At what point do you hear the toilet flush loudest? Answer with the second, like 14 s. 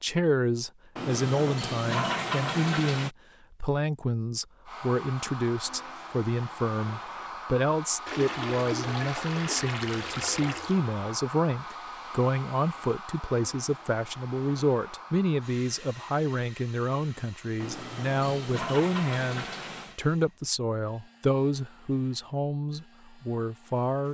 2 s.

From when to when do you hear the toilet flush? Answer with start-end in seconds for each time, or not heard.
0.9-3.1, 8.1-10.8, 17.6-19.9.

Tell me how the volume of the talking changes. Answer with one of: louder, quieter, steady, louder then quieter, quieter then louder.
steady.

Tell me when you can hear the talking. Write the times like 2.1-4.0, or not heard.
0.0-24.1.